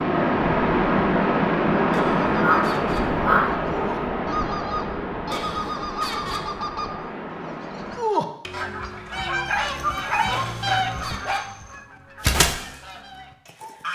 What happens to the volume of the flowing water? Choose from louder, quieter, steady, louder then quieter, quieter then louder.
quieter.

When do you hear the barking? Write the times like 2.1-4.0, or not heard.
2.4-3.6, 9.4-11.5.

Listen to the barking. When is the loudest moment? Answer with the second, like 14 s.
3 s.